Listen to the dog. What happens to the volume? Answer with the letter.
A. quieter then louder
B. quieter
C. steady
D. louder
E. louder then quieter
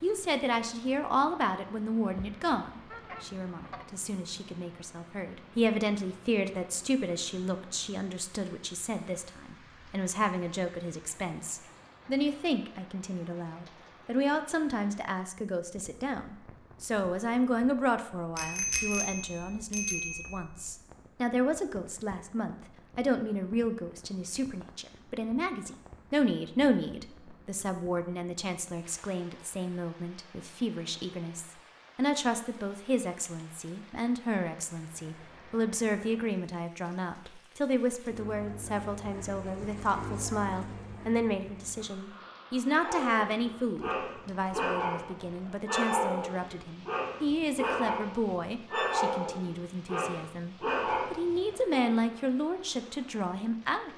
C.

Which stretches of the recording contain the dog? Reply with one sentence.
You can hear the dog from 42.6 to 52.0 s.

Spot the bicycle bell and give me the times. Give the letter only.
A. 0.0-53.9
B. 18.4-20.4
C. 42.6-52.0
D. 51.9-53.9
B.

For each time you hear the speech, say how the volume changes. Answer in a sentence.
The speech can be heard from 0.0 to 53.9 s, at a steady volume.